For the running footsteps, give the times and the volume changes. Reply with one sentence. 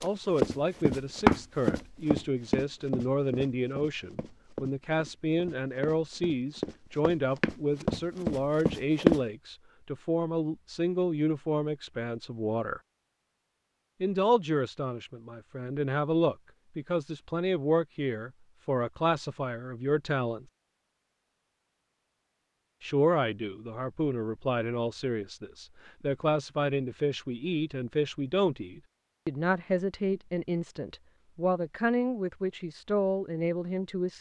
The running footsteps can be heard from 0.0 to 9.2 s, getting quieter then louder.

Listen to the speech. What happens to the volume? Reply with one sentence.
The loudness of the speech stays about the same.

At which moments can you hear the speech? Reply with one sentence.
You can hear the speech from 0.0 to 12.8 s, from 14.0 to 20.4 s and from 22.8 to 34.1 s.